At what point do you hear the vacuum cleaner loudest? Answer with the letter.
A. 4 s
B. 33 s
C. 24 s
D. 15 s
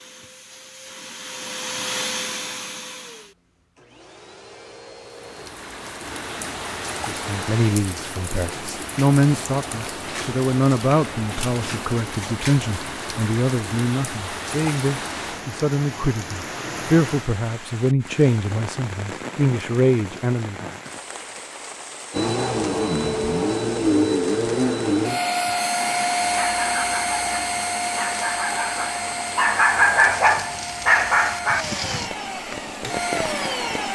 C.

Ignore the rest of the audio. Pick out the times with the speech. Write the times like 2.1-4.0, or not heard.
7.0-20.7.